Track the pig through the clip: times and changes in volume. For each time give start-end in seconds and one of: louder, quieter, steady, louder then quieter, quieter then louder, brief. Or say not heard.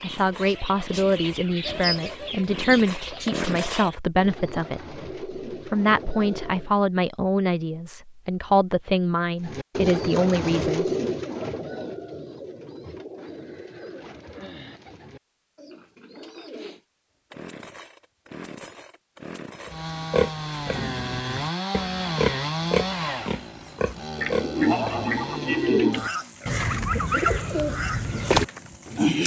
19.6-29.1 quieter.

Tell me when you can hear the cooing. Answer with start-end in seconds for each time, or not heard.
0.0-6.8, 9.4-16.8, 24.1-29.2.